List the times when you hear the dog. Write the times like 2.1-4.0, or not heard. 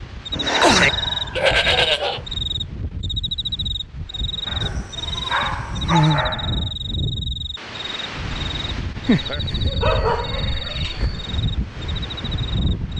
0.4-2.2, 4.5-6.7, 9.1-11.2.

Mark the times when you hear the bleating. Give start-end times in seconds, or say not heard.
0.3-2.2, 4.6-6.2, 10.1-11.1.